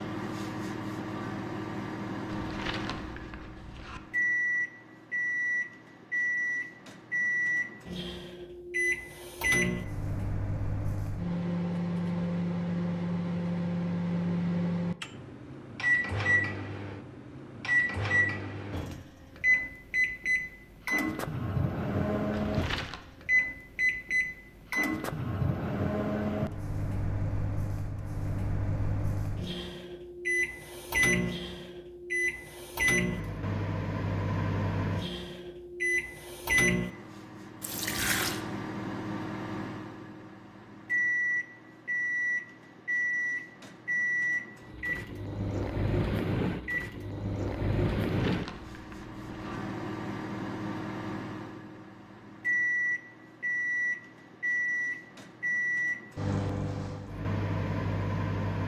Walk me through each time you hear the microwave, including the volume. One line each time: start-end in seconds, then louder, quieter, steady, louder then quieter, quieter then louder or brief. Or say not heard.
0.0-58.6 steady.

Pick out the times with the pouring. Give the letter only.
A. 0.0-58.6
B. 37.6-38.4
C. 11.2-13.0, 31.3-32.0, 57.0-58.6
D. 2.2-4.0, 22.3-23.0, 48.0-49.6
B.